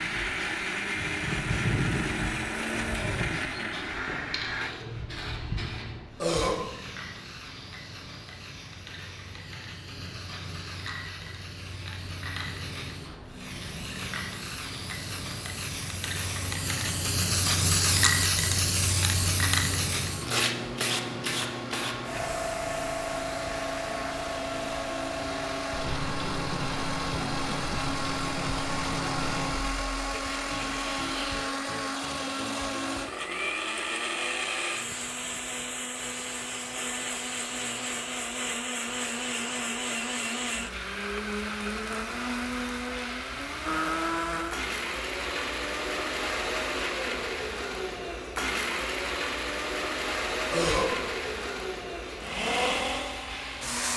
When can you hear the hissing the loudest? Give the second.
18 s.